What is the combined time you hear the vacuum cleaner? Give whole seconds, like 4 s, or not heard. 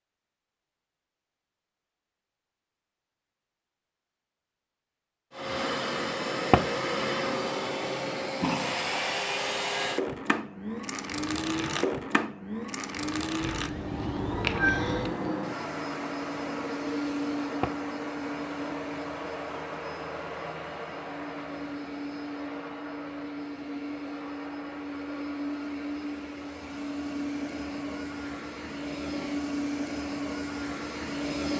26 s.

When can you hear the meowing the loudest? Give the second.
15 s.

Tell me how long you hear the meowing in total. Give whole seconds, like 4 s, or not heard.
2 s.